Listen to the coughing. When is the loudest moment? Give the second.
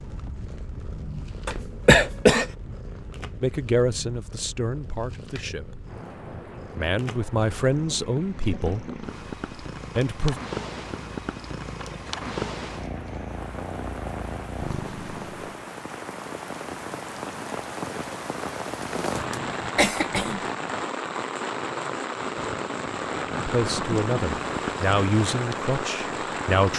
2 s.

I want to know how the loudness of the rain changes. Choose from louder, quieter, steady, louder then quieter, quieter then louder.
louder.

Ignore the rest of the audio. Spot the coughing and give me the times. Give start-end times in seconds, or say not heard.
1.4-2.5, 18.9-20.4.